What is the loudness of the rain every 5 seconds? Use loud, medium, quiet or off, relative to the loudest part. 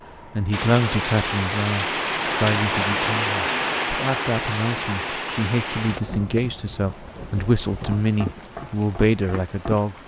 loud, medium.